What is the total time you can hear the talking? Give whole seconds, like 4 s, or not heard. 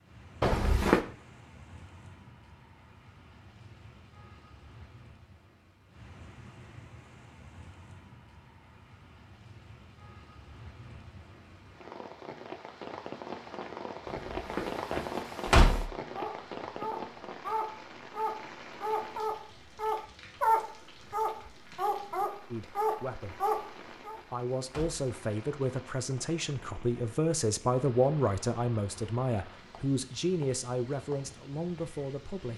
9 s.